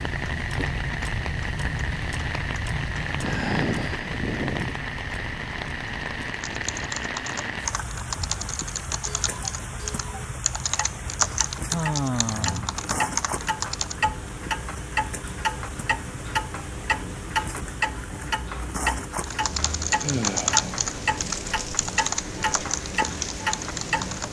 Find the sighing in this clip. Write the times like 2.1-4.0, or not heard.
3.2-4.7, 11.6-12.8, 20.0-20.7.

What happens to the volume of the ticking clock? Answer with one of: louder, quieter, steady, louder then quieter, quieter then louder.
quieter then louder.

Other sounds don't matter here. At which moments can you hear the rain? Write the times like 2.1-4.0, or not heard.
0.0-24.2.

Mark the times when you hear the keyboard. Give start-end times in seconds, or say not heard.
6.4-13.9, 19.2-24.2.